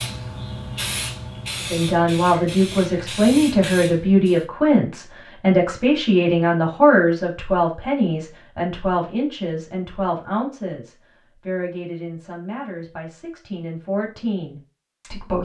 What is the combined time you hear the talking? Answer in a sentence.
The talking can be heard for 14 seconds in total.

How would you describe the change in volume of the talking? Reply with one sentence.
The volume of the talking goes down.